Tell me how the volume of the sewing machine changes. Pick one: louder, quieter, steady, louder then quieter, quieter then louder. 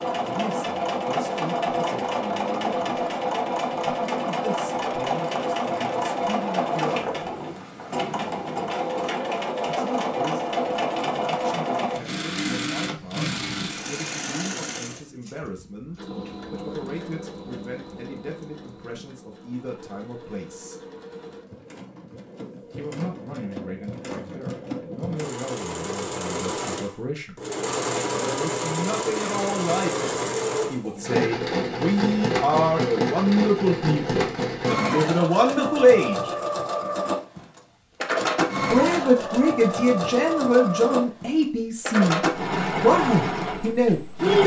quieter then louder.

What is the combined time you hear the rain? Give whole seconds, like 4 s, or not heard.
not heard.